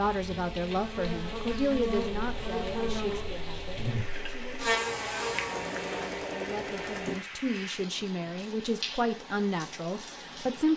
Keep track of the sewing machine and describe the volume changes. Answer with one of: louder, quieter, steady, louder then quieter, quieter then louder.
louder.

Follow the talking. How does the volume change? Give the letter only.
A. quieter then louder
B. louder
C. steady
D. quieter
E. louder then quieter
A.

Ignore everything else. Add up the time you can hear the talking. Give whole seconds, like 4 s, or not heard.
11 s.